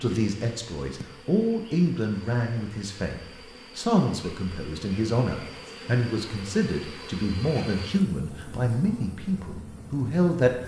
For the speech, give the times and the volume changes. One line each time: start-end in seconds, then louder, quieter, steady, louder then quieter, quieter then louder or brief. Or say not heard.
0.0-10.6 steady.